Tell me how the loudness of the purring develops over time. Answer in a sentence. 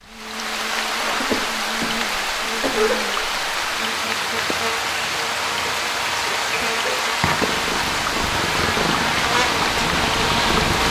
The volume of the purring goes up.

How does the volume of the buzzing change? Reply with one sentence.
The volume of the buzzing goes up.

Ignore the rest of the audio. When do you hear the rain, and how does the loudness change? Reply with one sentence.
The rain can be heard from 0.0 to 10.8 s, at a steady volume.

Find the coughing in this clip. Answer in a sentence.
You can hear the coughing from 1.0 to 3.0 s and from 5.7 to 7.1 s.